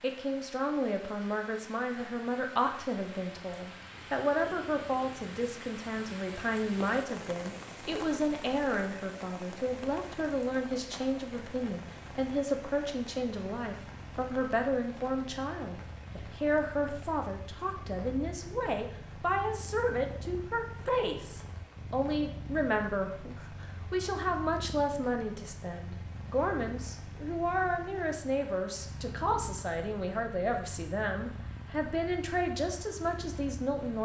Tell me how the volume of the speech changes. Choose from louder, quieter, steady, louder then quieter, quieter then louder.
steady.